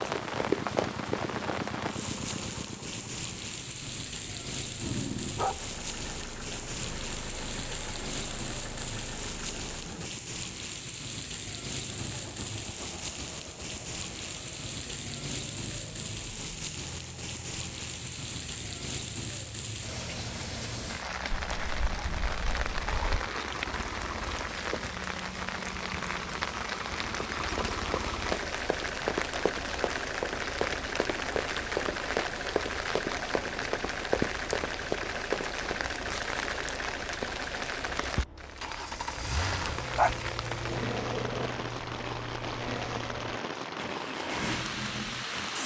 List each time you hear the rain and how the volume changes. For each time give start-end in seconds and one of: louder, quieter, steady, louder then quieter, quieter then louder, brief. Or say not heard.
0.0-45.6 steady.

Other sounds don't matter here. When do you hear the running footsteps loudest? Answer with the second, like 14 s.
1 s.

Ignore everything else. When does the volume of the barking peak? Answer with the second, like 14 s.
40 s.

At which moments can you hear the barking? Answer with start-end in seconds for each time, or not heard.
4.8-5.7, 21.3-23.3, 40.0-41.5.